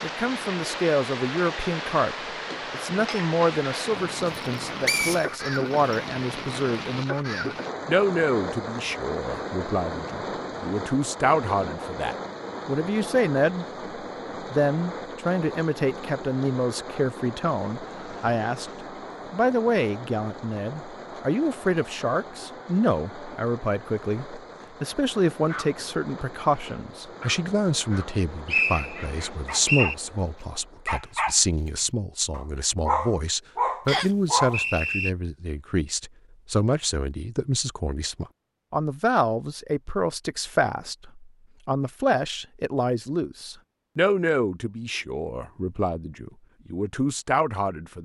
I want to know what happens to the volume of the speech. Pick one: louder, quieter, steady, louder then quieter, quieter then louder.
steady.